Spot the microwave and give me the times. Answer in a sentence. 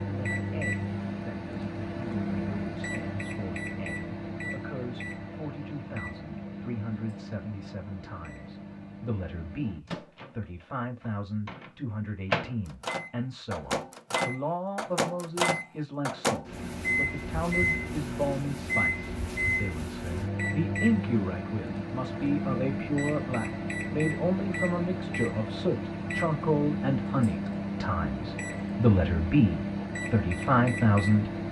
The microwave can be heard from 0.0 to 31.4 s.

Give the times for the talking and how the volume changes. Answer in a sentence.
The talking can be heard from 0.0 to 31.4 s, getting louder.